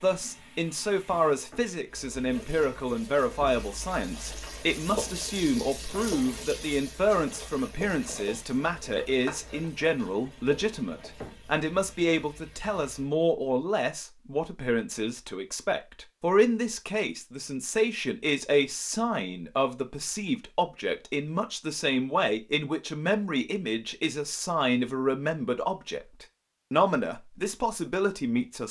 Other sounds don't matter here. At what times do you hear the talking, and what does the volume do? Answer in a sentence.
The talking can be heard from 0.0 to 28.6 s, at a steady volume.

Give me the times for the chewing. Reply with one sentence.
The chewing can't be heard in this clip.